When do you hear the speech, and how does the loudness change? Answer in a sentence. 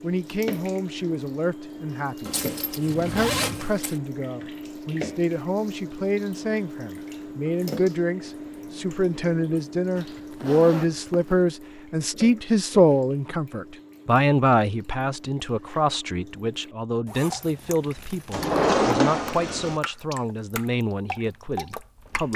You can hear the speech from 0.0 to 22.3 s, getting louder then quieter.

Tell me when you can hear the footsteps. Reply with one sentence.
You can't hear the footsteps here.